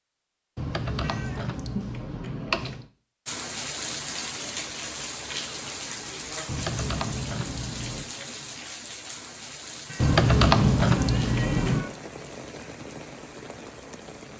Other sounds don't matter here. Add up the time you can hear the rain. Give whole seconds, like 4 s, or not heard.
11 s.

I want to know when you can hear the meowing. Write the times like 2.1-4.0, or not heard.
1.0-1.9, 9.8-11.9.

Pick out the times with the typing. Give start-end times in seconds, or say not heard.
0.6-2.9, 6.5-8.1, 9.9-11.8.